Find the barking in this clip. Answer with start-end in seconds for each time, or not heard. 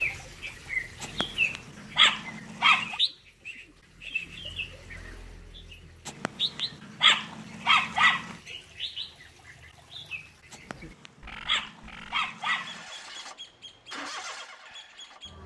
1.0-3.0, 6.0-8.3, 10.5-12.8.